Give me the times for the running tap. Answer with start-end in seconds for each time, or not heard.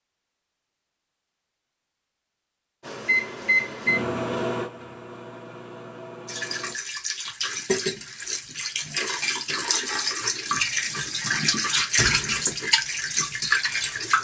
6.2-14.1.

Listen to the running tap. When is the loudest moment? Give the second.
12 s.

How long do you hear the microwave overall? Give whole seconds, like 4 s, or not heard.
4 s.